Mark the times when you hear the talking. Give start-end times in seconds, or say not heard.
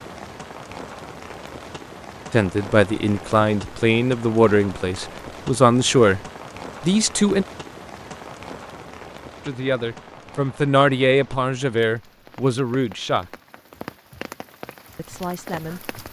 2.3-6.2, 6.8-7.5, 9.4-13.3, 14.9-15.9.